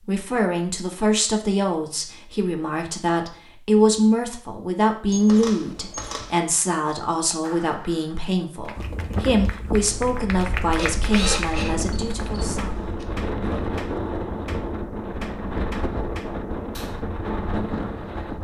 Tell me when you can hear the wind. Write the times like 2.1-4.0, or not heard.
8.8-18.3.